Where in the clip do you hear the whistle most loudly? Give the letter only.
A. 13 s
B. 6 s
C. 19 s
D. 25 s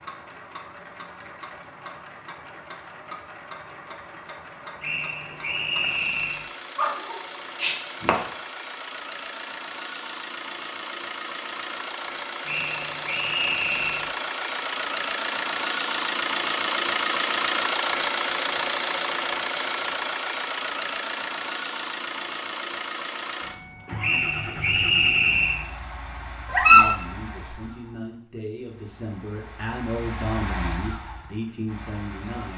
D.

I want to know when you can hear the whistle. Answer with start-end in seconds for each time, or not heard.
4.8-6.5, 12.4-14.1, 24.0-25.6.